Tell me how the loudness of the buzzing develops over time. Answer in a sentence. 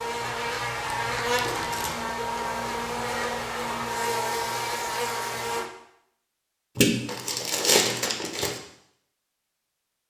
The loudness of the buzzing stays about the same.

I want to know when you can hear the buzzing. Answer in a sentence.
The buzzing can be heard from 0.0 to 5.7 s.